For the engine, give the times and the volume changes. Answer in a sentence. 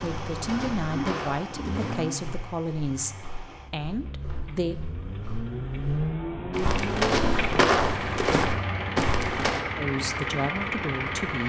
You can hear the engine from 0.0 to 11.4 s, getting quieter then louder.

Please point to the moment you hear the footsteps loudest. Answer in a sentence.
The volume of the footsteps peaks at 8 seconds.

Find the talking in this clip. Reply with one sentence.
The talking can be heard from 0.0 to 4.8 s and from 9.8 to 11.4 s.